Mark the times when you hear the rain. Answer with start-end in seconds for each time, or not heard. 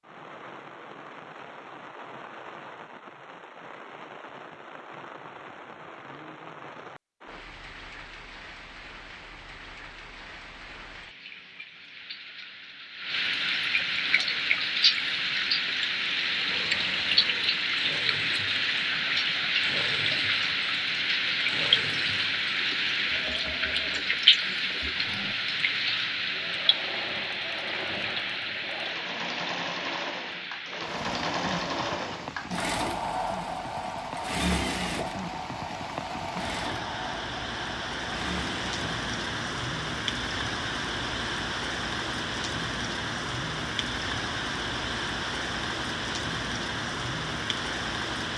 0.0-48.3.